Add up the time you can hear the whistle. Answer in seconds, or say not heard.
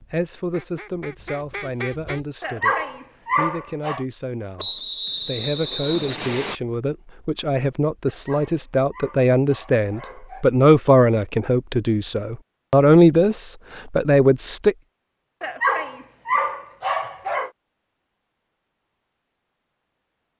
2 s.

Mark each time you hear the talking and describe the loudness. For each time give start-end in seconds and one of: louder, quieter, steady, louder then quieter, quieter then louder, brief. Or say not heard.
0.1-14.8 louder.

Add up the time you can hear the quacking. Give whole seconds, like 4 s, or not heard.
2 s.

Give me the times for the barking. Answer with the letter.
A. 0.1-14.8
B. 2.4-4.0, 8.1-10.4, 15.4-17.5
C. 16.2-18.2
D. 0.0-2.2
B.